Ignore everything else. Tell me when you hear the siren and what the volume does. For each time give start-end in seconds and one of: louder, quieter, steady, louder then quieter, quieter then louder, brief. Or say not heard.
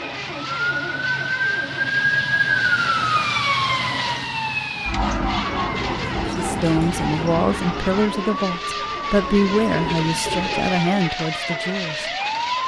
0.0-12.6 quieter.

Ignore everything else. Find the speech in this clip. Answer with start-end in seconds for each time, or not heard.
6.2-12.1.